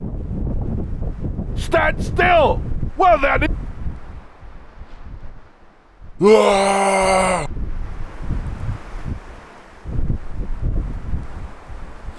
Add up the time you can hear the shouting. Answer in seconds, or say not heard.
3 s.